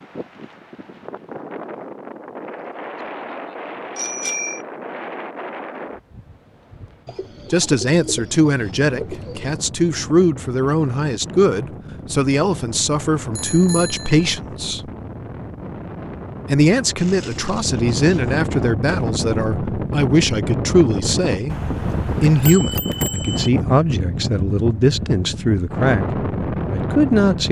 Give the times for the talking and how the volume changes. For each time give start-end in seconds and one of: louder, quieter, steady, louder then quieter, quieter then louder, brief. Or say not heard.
7.5-14.9 steady
16.4-27.4 steady.